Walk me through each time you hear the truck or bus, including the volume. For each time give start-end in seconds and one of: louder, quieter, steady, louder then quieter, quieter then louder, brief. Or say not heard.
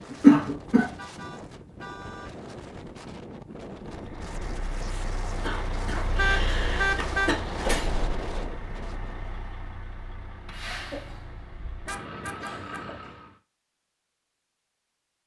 3.9-13.3 louder then quieter.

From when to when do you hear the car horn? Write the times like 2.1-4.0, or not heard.
0.9-2.4, 6.2-7.3, 10.5-12.9.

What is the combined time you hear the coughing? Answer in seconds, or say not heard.
4 s.